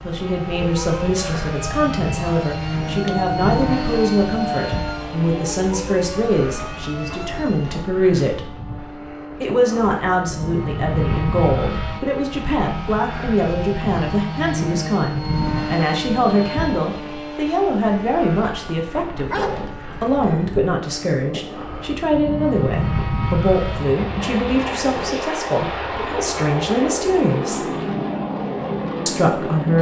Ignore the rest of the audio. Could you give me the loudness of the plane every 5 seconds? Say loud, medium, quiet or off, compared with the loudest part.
loud, medium, loud, loud, loud, loud.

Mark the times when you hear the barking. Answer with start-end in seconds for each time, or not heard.
19.2-20.6.